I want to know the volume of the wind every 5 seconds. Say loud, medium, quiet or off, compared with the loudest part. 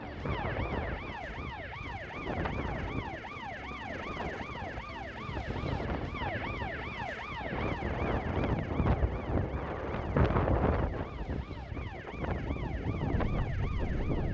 medium, loud, loud.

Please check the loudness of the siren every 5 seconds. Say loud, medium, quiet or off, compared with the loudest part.
loud, loud, medium.